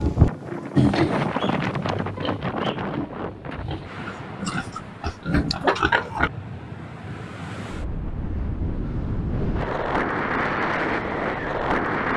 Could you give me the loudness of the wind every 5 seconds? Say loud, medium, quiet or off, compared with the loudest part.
loud, medium, loud.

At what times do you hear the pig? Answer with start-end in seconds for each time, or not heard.
0.8-6.3.